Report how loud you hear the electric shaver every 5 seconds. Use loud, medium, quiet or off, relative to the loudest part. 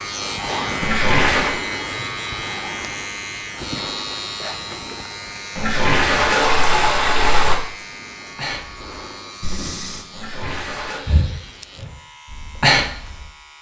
loud, medium, quiet.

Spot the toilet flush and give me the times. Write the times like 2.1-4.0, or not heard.
0.8-1.6, 5.5-7.5, 10.1-11.0.